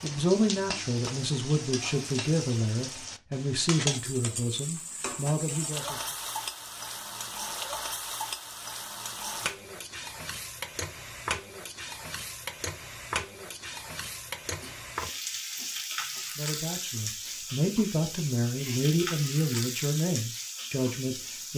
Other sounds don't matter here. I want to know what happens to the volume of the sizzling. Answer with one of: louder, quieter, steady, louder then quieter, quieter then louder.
steady.